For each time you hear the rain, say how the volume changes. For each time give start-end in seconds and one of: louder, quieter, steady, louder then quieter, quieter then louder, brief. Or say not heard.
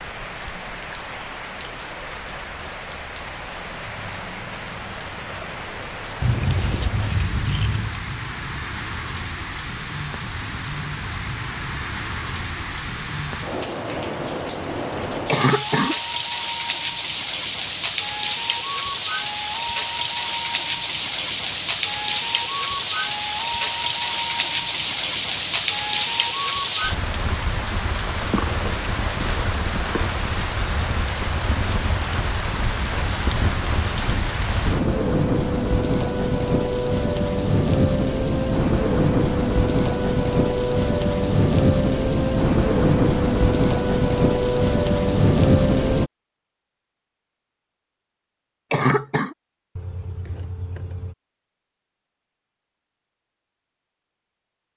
0.0-46.1 louder.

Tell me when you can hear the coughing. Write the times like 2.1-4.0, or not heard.
15.2-15.9, 48.7-49.3.